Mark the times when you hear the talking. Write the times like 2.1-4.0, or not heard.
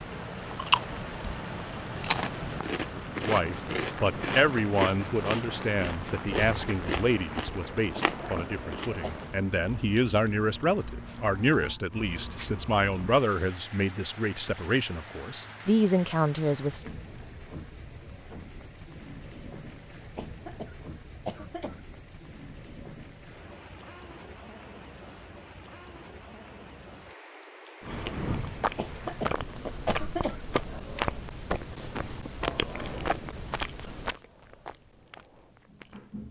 3.2-16.9.